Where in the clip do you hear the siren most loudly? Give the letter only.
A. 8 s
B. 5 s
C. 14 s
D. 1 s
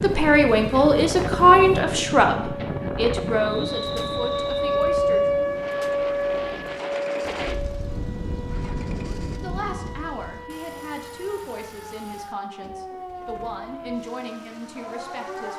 B.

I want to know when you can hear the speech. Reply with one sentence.
The speech can be heard from 0.0 to 5.4 s and from 9.3 to 15.5 s.